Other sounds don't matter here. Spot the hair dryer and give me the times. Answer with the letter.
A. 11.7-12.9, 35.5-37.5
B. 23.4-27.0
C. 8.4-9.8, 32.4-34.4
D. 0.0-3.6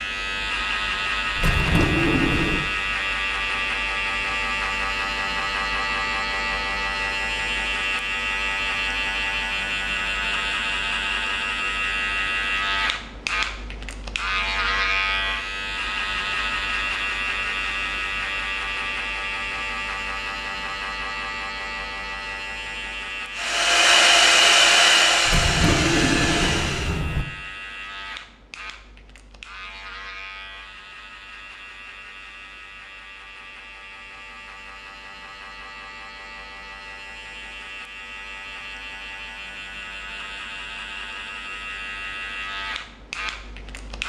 B.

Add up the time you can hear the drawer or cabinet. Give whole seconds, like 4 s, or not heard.
3 s.